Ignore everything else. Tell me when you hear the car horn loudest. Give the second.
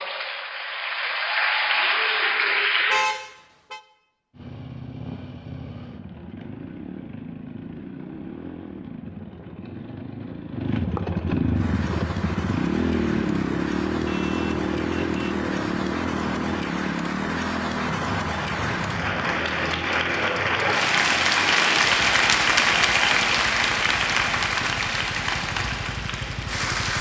3 s.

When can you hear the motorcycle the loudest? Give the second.
13 s.